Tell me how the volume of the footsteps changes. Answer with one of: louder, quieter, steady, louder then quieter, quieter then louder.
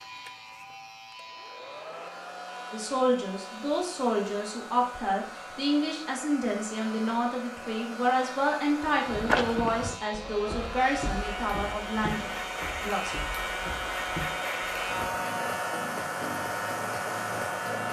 quieter.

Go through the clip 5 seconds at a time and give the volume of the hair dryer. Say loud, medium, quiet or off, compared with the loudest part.
medium, medium, loud, loud.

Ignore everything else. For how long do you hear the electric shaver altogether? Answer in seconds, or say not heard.
18 s.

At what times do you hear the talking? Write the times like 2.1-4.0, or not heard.
2.7-13.2.